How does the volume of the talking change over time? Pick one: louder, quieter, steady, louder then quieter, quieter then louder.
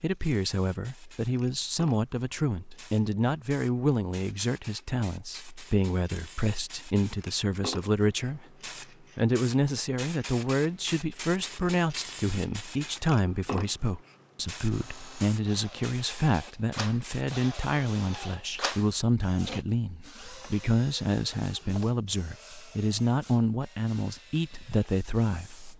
steady.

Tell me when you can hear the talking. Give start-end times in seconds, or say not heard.
0.0-8.4, 9.2-25.7.